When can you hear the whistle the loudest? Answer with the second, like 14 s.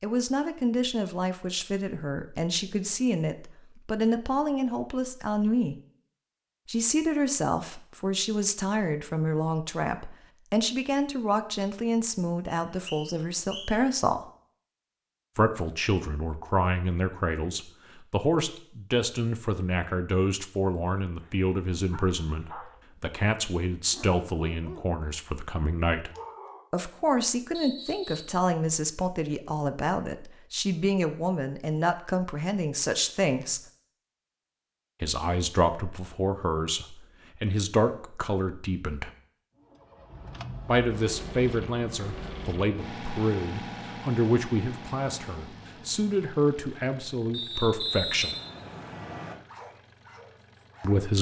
48 s.